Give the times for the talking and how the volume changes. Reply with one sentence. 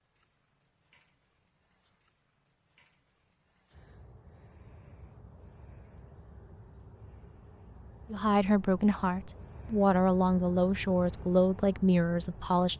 You can hear the talking from 8.1 to 12.7 s, at a steady volume.